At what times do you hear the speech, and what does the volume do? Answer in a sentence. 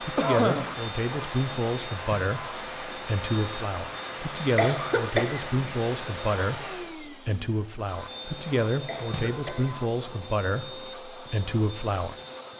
You can hear the speech from 0.0 to 12.2 s, at a steady volume.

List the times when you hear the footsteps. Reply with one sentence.
The footsteps can't be heard in this clip.